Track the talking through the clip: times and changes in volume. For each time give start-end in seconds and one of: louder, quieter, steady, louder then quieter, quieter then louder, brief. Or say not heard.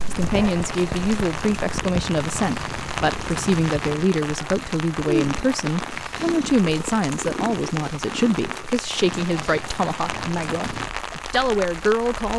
0.1-12.3 steady.